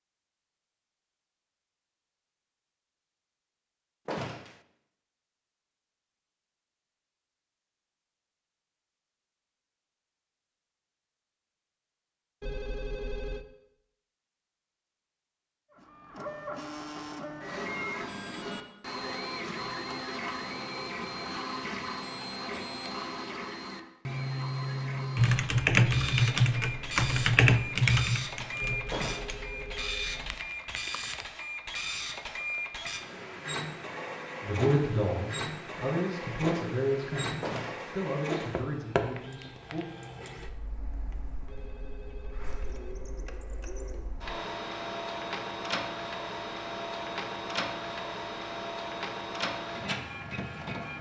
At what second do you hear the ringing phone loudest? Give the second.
13 s.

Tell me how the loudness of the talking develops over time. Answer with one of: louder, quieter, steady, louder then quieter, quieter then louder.
quieter.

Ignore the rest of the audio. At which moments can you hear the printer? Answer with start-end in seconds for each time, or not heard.
15.8-50.9.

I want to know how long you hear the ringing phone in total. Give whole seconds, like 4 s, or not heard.
5 s.